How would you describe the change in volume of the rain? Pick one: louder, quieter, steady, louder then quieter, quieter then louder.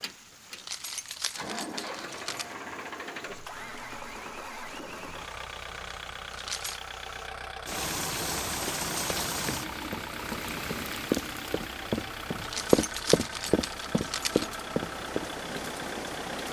louder then quieter.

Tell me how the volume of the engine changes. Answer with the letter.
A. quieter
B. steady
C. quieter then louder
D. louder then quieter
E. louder
B.